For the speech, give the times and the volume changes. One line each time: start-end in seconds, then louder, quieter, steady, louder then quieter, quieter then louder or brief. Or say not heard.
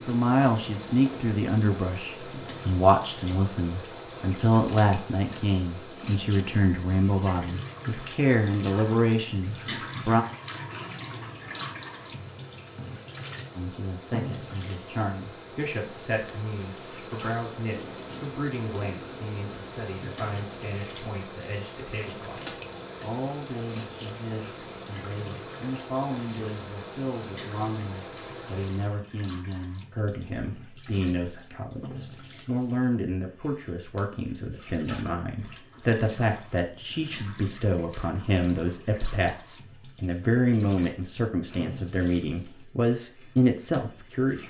0.1-10.2 steady
13.6-44.4 louder.